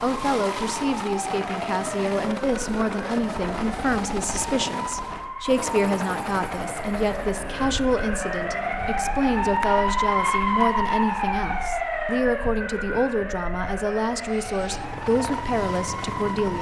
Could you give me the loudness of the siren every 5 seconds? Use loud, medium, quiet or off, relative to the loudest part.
medium, loud, loud, medium.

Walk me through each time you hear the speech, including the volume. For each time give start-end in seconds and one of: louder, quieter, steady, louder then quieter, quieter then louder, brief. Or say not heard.
0.0-16.5 steady.